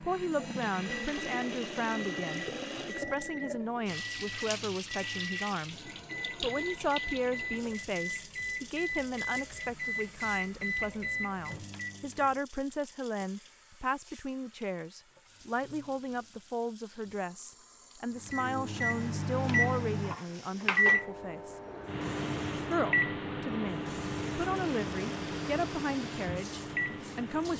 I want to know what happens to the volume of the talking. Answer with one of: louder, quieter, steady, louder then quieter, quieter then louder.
steady.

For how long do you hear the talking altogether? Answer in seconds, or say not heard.
26 s.